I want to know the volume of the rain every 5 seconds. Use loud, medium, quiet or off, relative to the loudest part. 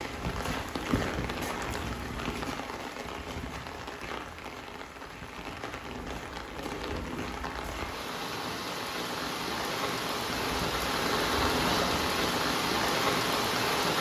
medium, medium, loud.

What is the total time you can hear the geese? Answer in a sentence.
The geese can be heard for 6 seconds in total.